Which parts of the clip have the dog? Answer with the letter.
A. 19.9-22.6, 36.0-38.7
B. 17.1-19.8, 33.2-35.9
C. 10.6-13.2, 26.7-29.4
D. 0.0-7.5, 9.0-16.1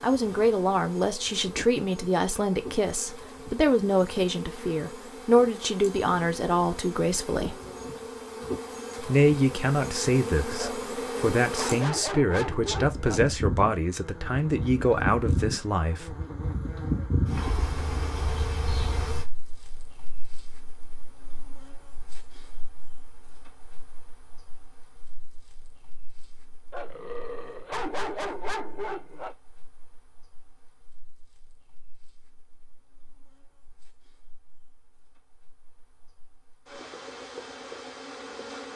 C.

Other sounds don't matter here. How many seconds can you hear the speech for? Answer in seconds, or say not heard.
15 s.